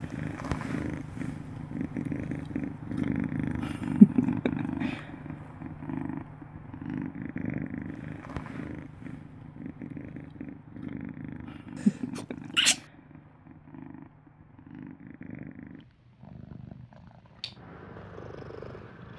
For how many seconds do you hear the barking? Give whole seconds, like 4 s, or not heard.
not heard.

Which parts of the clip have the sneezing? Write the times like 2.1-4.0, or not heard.
11.8-12.8.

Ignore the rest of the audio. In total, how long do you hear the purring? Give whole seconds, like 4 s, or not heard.
19 s.